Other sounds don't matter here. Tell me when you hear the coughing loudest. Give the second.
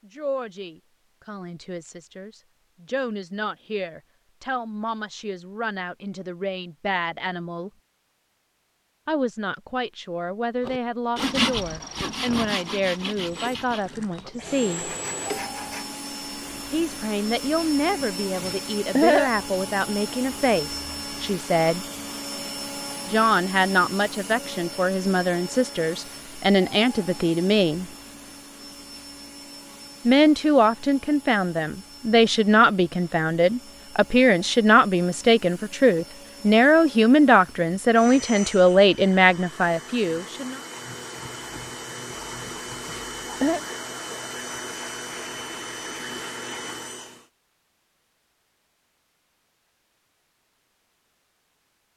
19 s.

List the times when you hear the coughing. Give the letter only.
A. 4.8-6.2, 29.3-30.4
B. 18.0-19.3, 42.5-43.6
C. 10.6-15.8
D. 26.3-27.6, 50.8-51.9
B.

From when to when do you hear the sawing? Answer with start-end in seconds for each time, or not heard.
10.6-15.8.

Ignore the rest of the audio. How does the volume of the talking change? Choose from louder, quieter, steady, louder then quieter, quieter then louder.
louder.